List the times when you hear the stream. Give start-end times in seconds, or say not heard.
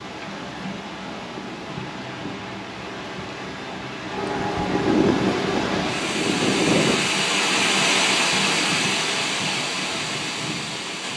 0.0-11.1.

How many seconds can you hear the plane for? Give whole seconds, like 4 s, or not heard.
3 s.